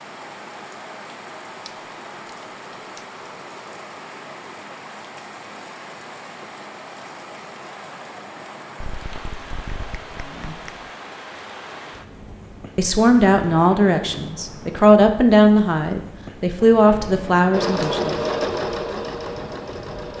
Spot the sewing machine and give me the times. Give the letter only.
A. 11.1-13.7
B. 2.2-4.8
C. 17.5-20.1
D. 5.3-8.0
C.